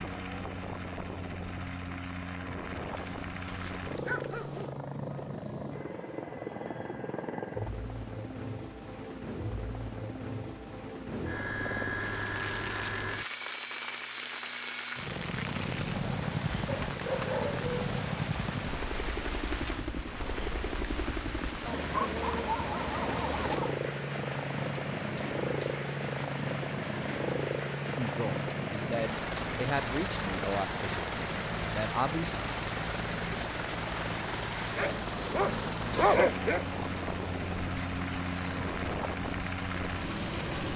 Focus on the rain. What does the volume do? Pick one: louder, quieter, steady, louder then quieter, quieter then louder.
steady.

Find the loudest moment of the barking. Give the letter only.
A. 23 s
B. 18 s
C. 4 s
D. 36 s
D.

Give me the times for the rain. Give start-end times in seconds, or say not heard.
11.9-40.7.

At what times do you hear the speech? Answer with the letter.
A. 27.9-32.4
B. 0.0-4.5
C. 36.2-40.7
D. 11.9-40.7
A.